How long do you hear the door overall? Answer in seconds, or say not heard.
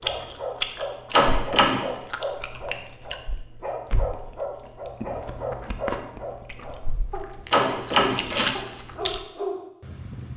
2 s.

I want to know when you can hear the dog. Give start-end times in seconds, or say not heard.
0.0-10.3.